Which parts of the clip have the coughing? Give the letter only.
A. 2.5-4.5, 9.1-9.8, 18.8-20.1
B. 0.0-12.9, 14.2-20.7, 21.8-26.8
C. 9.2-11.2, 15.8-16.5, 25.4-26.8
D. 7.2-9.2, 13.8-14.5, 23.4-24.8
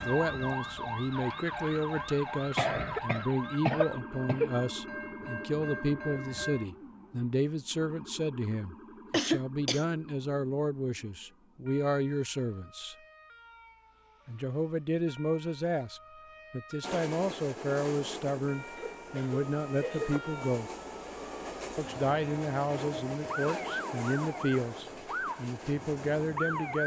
A.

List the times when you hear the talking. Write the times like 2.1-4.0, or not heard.
0.0-12.9, 14.2-20.7, 21.8-26.8.